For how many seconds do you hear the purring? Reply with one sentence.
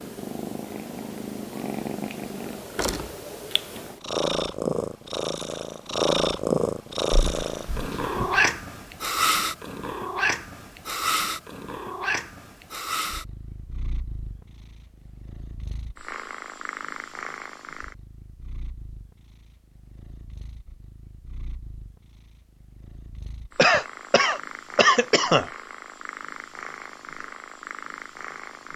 The purring can be heard for 29 seconds in total.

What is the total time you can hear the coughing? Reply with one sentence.
The coughing can be heard for 3 seconds in total.